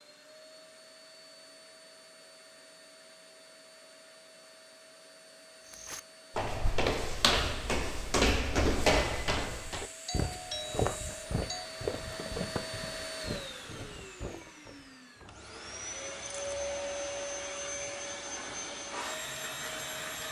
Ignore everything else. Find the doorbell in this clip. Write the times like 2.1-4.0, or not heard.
10.1-11.7.